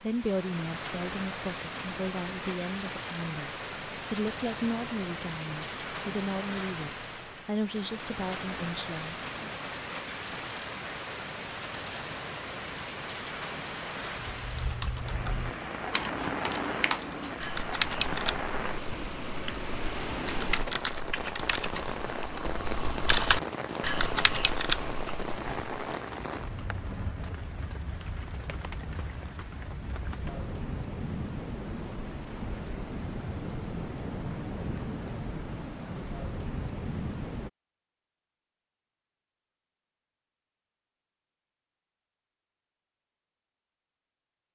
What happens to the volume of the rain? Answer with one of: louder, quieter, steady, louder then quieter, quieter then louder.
steady.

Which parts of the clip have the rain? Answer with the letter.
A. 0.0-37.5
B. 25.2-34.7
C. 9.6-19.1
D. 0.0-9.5
A.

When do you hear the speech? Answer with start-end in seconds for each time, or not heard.
0.0-9.5.